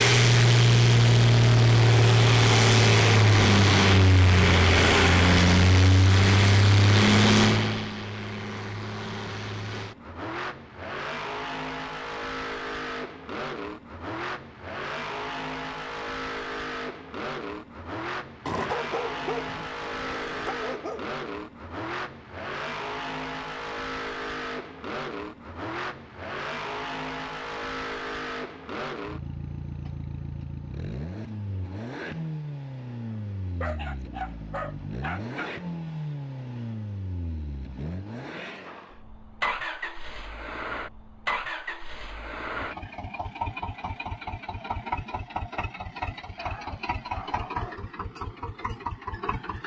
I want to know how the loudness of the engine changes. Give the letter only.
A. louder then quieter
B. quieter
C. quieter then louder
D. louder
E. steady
B.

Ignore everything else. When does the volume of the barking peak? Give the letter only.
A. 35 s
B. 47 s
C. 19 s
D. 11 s
C.